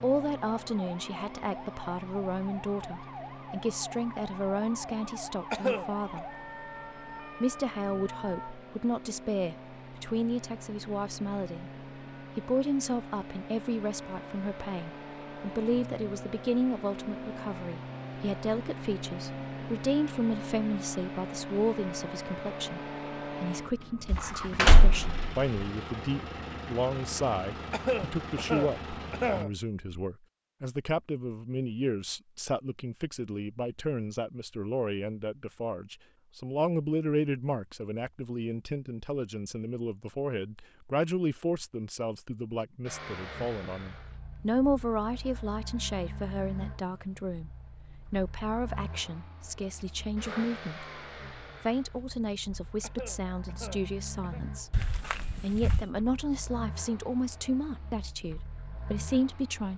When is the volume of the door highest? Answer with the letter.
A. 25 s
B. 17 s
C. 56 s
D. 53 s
A.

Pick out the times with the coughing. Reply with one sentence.
You can hear the coughing from 5.5 to 6.2 s, from 27.7 to 29.5 s and from 52.8 to 54.5 s.